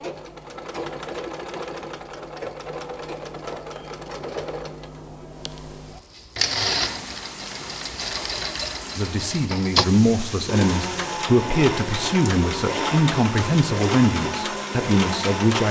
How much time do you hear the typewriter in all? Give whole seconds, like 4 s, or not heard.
not heard.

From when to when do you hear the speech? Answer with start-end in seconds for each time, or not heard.
8.9-15.6.